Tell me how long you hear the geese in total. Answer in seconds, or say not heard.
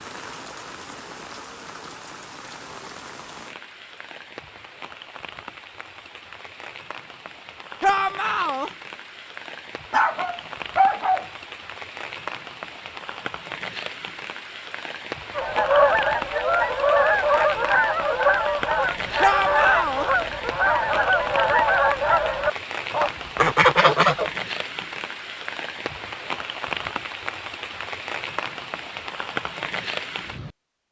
9 s.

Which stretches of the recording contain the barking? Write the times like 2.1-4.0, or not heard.
9.9-11.2.